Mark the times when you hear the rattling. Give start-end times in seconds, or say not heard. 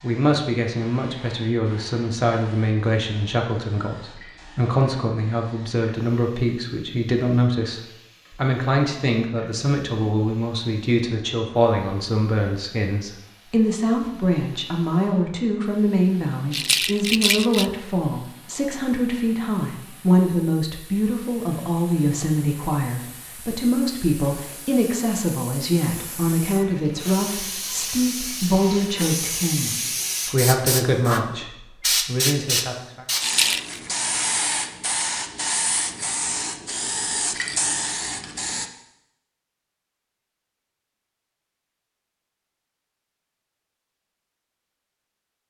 16.5-17.6, 33.2-33.8.